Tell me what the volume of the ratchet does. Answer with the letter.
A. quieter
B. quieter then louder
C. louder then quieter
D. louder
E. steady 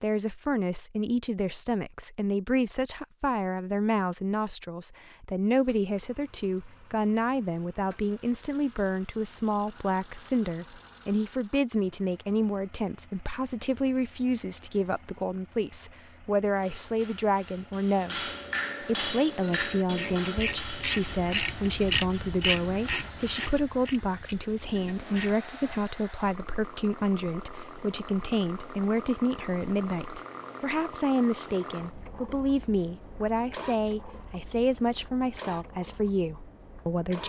C.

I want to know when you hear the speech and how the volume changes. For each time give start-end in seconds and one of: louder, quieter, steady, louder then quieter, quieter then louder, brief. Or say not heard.
0.0-37.2 steady.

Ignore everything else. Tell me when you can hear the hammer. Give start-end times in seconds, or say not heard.
16.6-23.6.